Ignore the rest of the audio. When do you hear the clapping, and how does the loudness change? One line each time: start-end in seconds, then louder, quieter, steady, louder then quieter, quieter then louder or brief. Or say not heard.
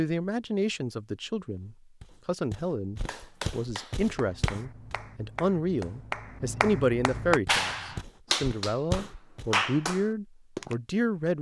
3.0-10.8 louder.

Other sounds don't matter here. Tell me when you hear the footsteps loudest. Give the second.
9 s.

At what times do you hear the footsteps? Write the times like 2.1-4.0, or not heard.
1.6-5.0, 7.5-9.6.